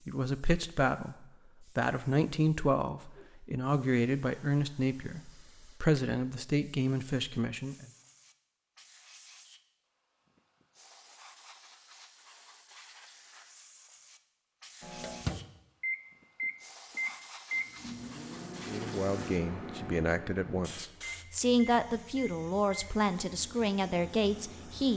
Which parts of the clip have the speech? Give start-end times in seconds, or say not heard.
0.1-7.9, 18.6-24.9.